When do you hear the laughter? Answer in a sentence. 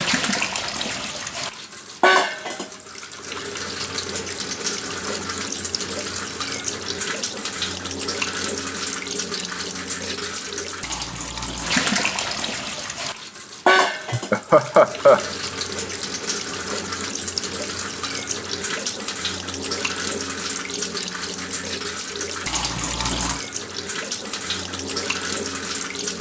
The laughter can be heard from 14.1 to 15.3 s.